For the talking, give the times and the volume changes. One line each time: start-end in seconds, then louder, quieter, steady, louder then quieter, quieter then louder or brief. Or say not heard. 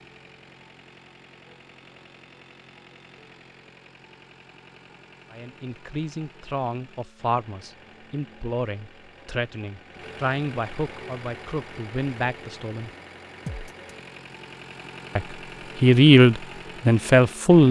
5.3-12.9 steady
15.2-17.6 brief.